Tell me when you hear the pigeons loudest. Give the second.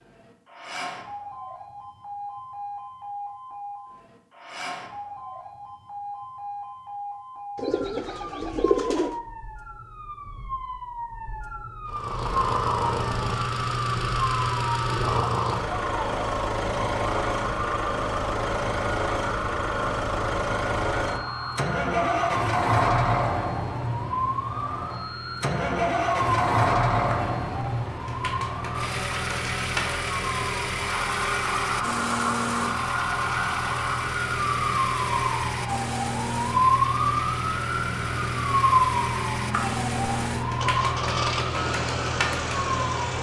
9 s.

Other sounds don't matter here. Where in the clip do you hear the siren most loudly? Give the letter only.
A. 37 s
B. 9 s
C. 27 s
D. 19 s
A.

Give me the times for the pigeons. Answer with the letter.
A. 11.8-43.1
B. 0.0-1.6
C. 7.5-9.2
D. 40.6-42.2
C.